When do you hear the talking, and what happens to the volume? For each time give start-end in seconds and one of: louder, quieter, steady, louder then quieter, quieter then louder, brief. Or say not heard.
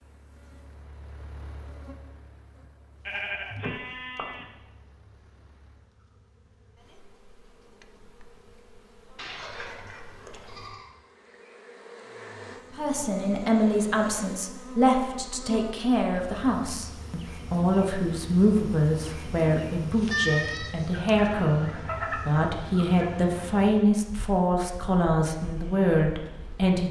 12.8-26.8 steady.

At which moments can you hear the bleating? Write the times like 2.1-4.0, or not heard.
3.0-4.5, 9.2-10.9, 20.1-21.9.